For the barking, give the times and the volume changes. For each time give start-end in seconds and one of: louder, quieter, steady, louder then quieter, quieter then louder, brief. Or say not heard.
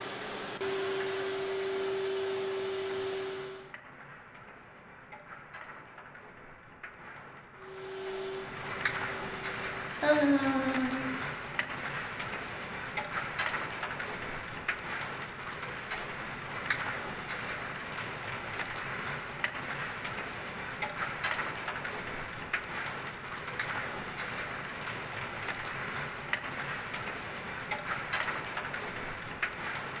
not heard.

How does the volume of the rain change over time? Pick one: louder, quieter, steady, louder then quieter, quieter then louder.
louder.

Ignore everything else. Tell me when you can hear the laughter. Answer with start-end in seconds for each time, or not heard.
10.0-11.7.